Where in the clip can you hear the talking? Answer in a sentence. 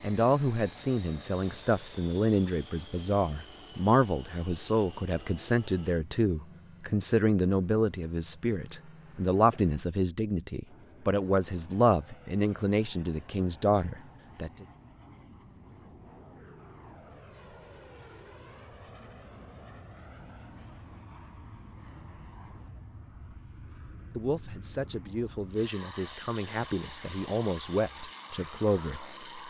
You can hear the talking from 0.0 to 14.7 s and from 24.1 to 29.1 s.